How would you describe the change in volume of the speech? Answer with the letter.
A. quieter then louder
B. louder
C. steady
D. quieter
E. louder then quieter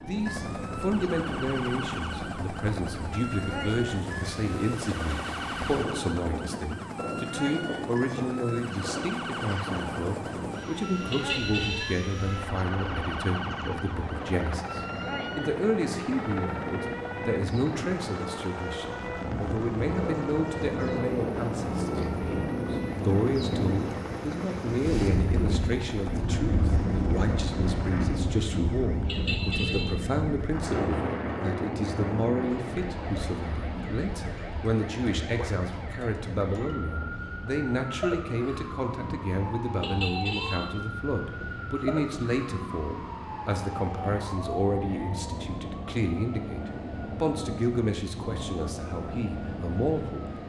C.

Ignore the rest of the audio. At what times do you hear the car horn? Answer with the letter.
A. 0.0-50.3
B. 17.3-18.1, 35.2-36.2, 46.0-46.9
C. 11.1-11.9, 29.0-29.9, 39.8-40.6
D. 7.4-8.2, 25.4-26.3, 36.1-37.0
C.